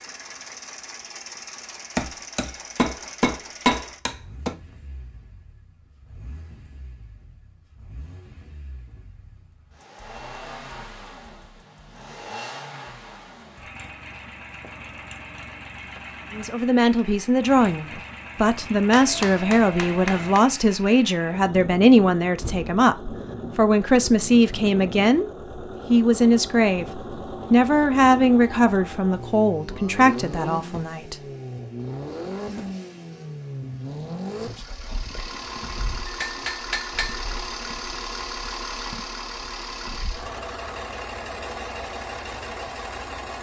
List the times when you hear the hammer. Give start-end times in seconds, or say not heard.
1.9-4.5, 18.9-20.4, 36.0-37.2.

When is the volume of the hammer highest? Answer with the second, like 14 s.
4 s.